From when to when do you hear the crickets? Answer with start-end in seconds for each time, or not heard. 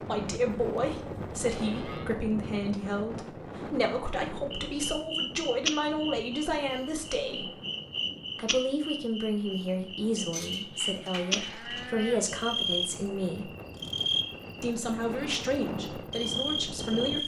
4.5-17.2.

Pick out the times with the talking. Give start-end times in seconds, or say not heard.
0.1-7.5, 8.3-13.5, 14.6-17.2.